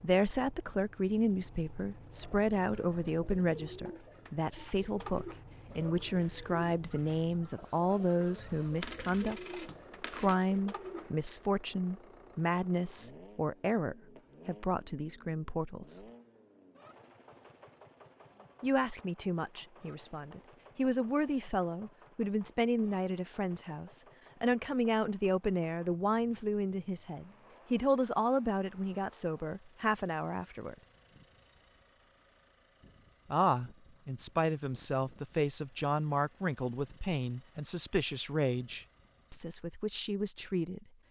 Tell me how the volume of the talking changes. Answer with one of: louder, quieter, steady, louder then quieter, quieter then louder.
steady.